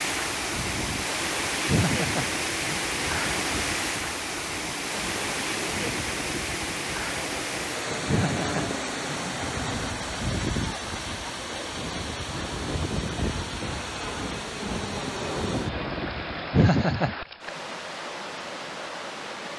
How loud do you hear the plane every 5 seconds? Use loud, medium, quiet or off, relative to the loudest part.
medium, loud, loud, loud.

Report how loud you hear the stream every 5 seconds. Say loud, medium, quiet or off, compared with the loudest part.
loud, loud, medium, medium.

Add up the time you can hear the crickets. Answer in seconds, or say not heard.
not heard.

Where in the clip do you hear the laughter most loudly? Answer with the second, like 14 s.
17 s.